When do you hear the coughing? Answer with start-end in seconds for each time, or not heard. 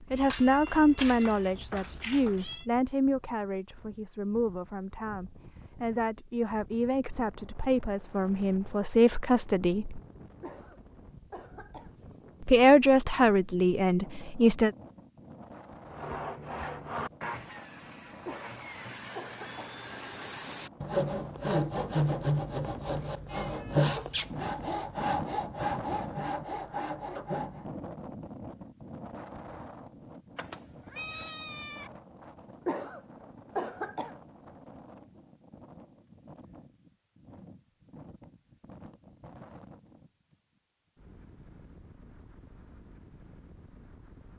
10.4-11.9, 18.2-19.7, 32.6-34.1.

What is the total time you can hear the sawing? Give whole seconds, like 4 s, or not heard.
12 s.